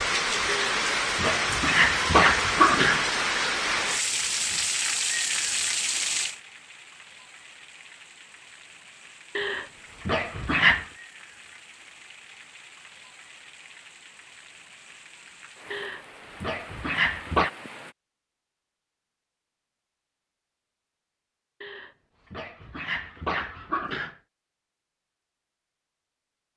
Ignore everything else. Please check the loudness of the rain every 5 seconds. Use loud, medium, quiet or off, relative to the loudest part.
loud, medium, quiet, quiet, off, off.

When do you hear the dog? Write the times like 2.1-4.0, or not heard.
0.5-3.1, 9.3-10.8, 15.7-17.5, 21.6-24.1.